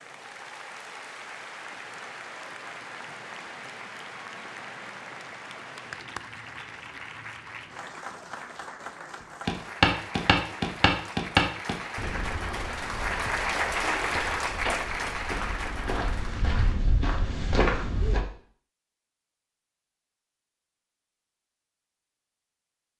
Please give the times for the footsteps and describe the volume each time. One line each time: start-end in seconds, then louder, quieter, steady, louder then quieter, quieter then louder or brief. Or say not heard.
9.4-18.2 quieter then louder.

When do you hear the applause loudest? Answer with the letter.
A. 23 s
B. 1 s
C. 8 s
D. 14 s
D.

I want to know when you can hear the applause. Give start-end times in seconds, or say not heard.
0.0-16.8.